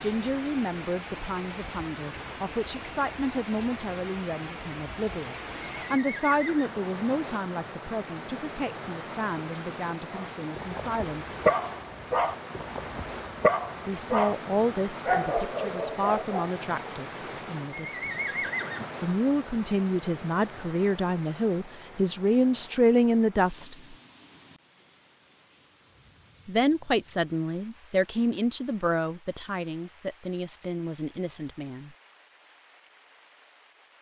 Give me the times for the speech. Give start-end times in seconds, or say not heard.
0.0-11.4, 13.8-18.4, 19.0-23.8, 26.4-31.9.